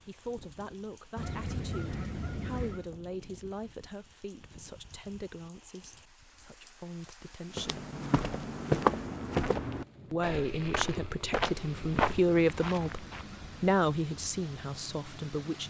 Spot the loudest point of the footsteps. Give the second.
9 s.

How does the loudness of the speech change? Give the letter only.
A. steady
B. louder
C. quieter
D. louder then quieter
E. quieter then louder
B.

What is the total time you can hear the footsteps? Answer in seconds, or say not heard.
6 s.